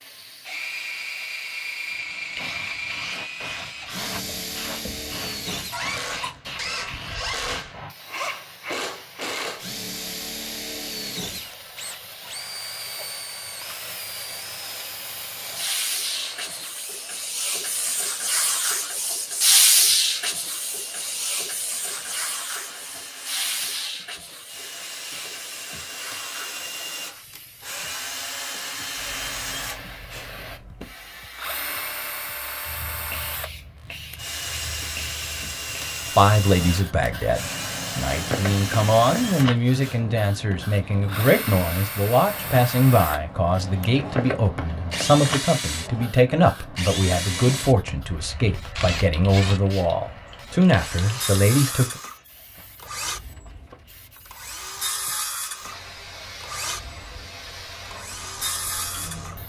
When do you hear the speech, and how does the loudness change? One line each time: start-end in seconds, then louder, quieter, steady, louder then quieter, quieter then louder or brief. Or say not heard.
36.1-52.0 steady.